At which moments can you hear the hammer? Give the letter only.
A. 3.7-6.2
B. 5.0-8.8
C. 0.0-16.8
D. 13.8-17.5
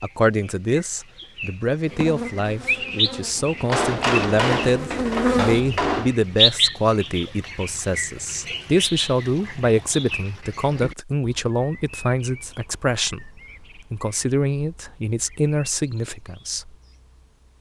A.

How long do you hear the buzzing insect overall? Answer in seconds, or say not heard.
4 s.